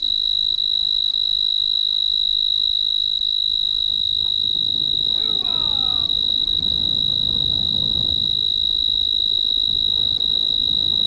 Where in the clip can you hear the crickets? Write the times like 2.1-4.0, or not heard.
0.0-11.0.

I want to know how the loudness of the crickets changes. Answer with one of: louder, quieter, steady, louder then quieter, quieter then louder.
steady.